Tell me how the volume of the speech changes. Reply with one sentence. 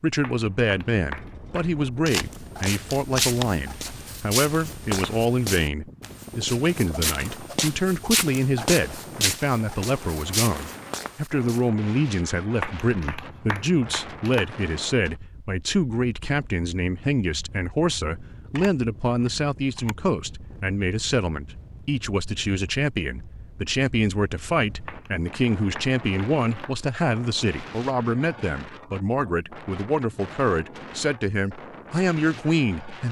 The loudness of the speech stays about the same.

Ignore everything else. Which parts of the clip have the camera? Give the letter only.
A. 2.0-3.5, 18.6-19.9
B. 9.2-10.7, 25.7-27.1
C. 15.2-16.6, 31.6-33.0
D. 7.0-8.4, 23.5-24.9
A.